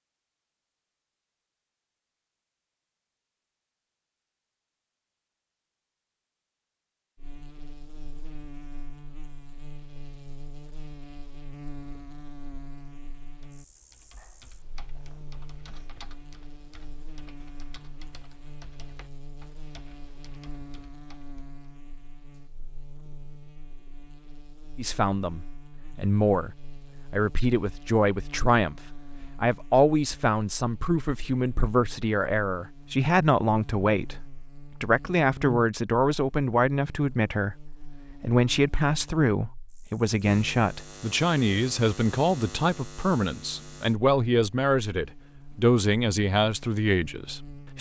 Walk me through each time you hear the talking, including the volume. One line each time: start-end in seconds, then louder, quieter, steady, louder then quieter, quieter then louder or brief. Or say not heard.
24.8-47.7 steady.